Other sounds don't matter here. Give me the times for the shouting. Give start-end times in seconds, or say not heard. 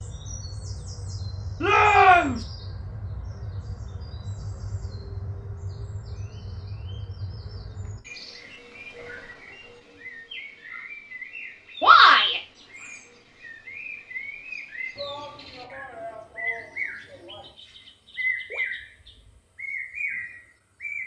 1.6-2.4, 11.8-12.4, 14.9-17.6.